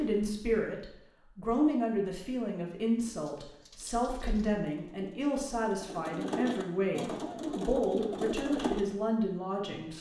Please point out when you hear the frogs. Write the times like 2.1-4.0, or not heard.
not heard.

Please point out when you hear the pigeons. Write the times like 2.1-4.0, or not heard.
3.0-8.8.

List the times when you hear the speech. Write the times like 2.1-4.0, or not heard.
0.0-9.9.